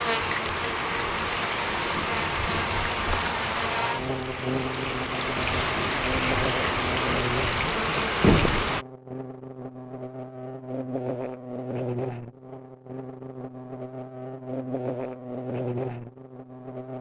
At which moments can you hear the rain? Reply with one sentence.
You can hear the rain from 0.0 to 8.8 s.